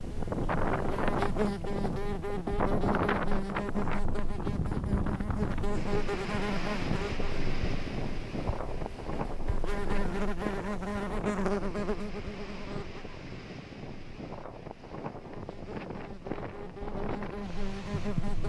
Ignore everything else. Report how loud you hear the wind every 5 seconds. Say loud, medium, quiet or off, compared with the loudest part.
loud, loud, medium, medium.